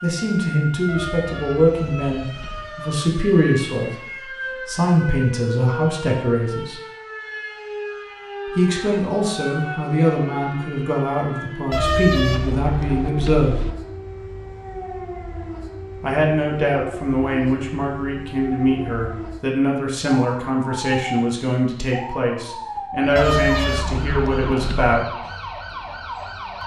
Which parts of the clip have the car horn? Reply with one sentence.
The car horn can be heard from 0.8 to 2.8 s, from 11.7 to 13.8 s and from 23.1 to 24.9 s.